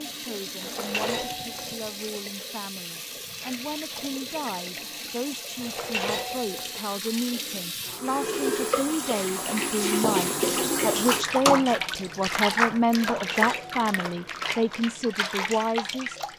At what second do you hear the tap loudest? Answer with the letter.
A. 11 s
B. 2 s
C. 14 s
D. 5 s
A.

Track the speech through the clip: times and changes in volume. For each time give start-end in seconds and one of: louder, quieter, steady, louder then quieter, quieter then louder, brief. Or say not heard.
0.1-16.2 louder.